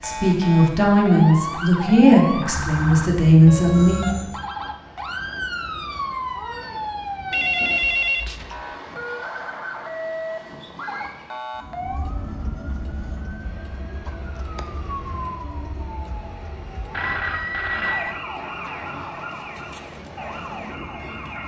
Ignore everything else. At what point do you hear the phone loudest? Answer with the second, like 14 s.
8 s.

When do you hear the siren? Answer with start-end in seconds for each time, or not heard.
0.0-21.4.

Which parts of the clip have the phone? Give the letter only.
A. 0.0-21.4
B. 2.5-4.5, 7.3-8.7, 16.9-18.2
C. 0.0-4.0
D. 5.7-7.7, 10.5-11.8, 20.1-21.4
B.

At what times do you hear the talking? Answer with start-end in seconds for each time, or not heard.
0.0-4.0.